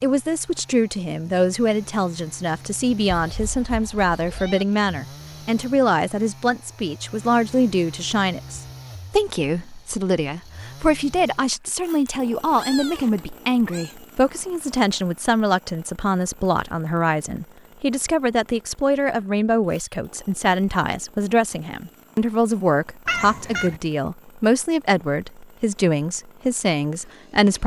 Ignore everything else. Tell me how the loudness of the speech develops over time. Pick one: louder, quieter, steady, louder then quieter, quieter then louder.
steady.